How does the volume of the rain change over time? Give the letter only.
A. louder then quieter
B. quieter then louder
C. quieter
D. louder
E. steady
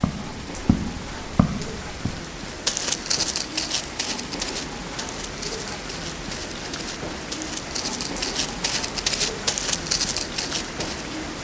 E.